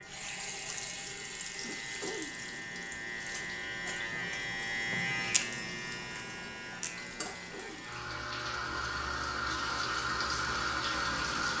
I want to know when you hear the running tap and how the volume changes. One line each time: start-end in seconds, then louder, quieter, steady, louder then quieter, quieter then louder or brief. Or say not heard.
0.0-11.5 quieter then louder.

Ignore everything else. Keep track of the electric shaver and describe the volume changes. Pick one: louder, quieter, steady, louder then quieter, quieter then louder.
louder then quieter.